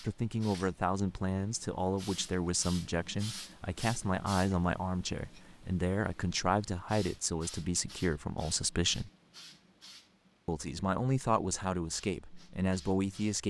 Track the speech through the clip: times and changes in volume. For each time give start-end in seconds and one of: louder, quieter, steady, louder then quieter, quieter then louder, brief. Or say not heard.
0.0-9.1 steady
10.4-13.4 brief.